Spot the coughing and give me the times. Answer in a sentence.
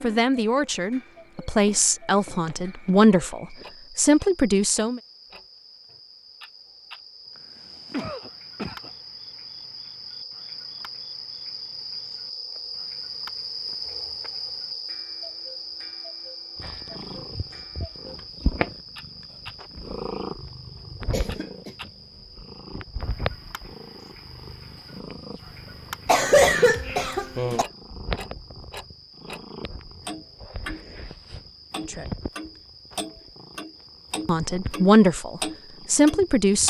The coughing can be heard from 7.3 to 8.9 s, from 21.1 to 21.8 s and from 26.1 to 27.6 s.